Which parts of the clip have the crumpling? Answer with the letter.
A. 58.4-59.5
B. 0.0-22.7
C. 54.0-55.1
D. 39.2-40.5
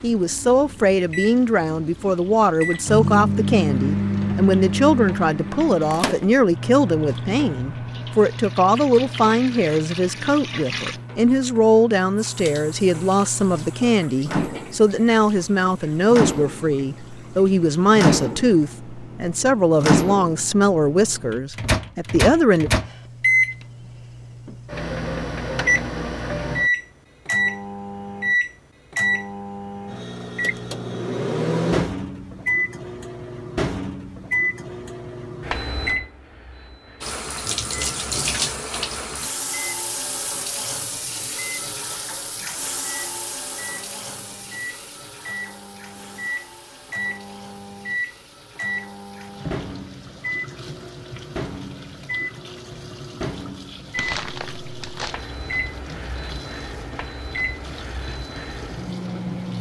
C.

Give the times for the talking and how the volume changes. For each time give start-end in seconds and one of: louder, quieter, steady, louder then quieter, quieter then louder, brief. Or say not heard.
0.0-22.7 steady.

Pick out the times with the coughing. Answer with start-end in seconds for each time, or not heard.
not heard.